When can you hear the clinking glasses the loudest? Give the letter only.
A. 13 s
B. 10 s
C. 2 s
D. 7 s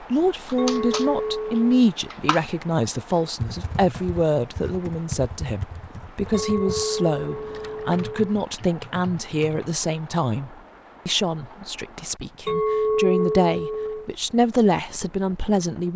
A.